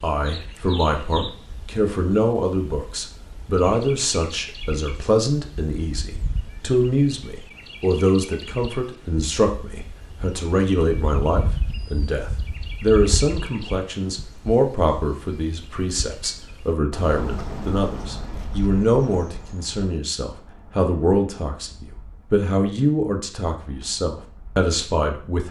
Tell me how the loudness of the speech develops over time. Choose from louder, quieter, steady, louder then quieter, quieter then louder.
steady.